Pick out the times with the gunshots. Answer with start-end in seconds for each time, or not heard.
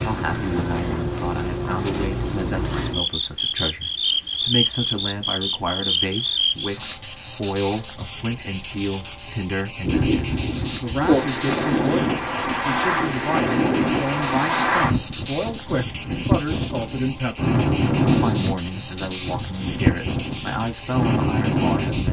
not heard.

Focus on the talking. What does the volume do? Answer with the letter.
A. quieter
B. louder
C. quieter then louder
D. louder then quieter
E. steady
E.